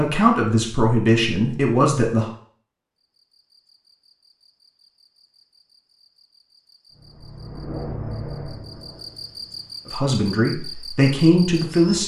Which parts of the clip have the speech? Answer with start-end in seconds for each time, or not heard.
0.0-2.3, 9.8-12.0.